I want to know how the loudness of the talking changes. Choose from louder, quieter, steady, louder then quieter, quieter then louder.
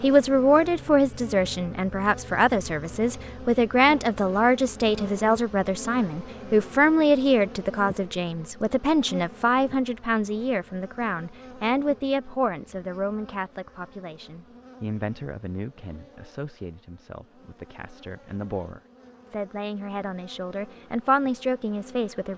quieter then louder.